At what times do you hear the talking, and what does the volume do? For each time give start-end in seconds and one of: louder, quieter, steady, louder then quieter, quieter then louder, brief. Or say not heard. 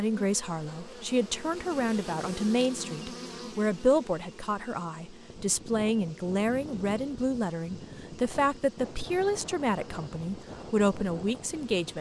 0.0-11.9 steady.